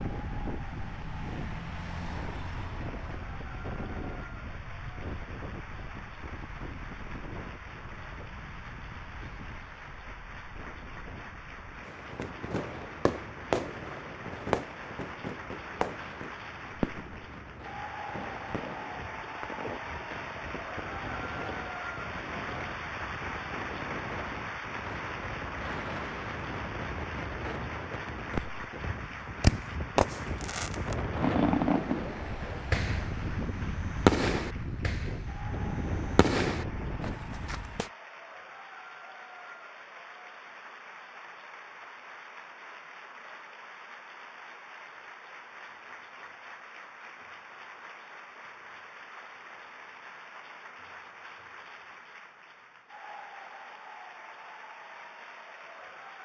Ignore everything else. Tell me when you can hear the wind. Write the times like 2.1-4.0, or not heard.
0.0-37.9.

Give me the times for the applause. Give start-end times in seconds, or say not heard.
0.0-56.1.